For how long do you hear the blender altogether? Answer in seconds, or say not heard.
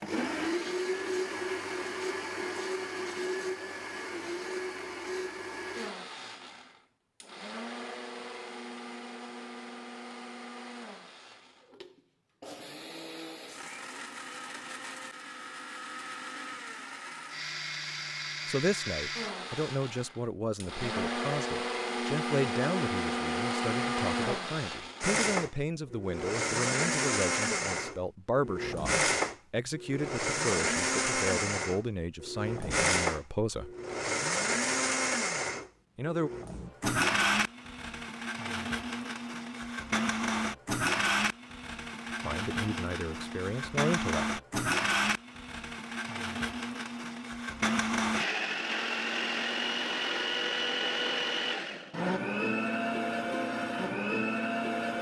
55 s.